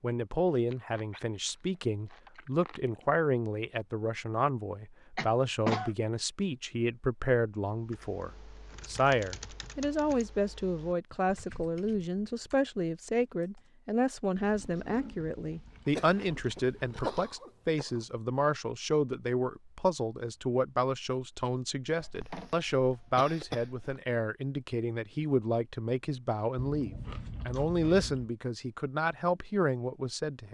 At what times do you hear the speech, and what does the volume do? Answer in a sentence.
You can hear the speech from 0.0 to 30.4 s, at a steady volume.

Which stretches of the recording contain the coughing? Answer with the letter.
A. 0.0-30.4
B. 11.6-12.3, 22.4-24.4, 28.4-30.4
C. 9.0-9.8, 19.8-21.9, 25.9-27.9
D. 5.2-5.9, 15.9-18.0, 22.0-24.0
D.